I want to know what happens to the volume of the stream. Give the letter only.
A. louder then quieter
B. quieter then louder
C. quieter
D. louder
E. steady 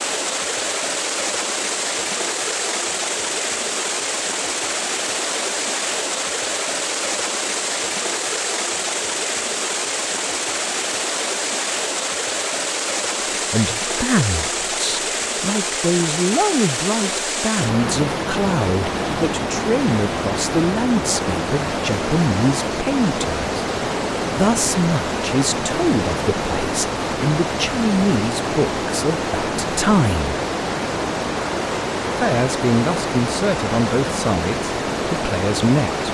E.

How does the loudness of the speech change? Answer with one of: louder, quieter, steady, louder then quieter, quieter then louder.
steady.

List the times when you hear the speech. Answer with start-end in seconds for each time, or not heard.
13.3-23.4, 24.4-30.4, 32.1-36.0.